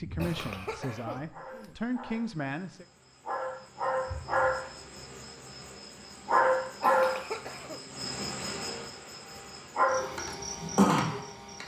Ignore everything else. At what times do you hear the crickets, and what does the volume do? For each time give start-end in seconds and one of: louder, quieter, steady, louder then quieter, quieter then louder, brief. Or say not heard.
0.0-11.6 louder.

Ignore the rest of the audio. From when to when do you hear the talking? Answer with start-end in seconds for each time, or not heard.
0.0-2.9.